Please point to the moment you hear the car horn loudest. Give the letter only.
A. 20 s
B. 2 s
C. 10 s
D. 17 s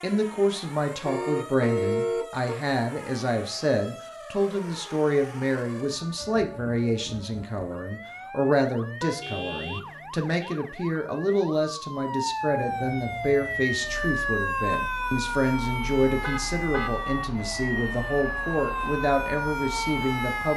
B.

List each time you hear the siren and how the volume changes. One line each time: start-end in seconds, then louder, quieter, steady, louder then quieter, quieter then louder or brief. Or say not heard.
0.0-20.5 louder.